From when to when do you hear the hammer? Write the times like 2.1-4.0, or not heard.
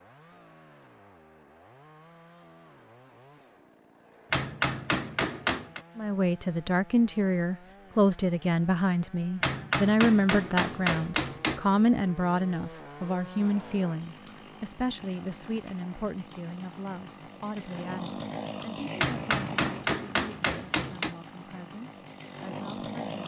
4.3-5.8, 9.4-11.6, 19.0-21.1.